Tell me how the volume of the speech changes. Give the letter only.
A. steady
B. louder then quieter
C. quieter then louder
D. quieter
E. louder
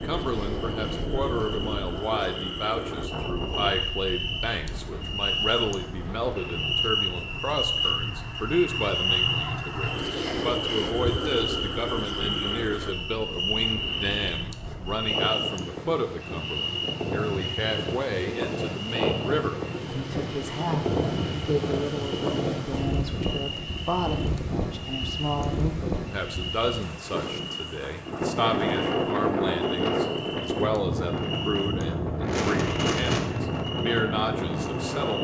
A.